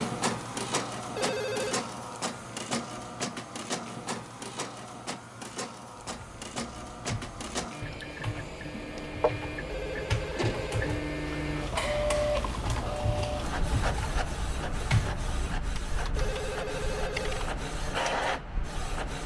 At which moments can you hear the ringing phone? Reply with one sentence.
You can hear the ringing phone from 1.1 to 1.8 s, from 9.7 to 10.8 s and from 16.1 to 17.4 s.